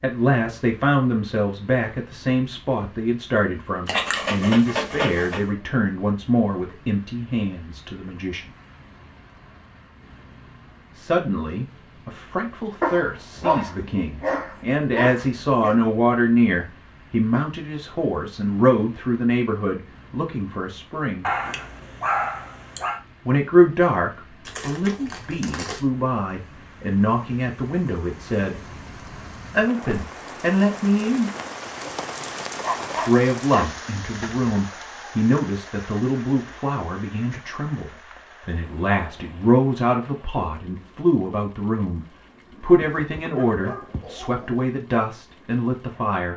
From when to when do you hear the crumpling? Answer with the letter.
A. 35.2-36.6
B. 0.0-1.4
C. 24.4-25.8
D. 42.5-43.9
C.